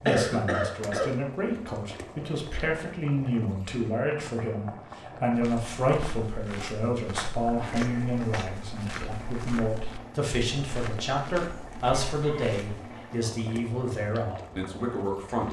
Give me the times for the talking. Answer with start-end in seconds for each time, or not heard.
0.0-15.4.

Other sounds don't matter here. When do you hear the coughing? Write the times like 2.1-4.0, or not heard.
0.1-1.1, 7.7-8.2, 11.8-12.6.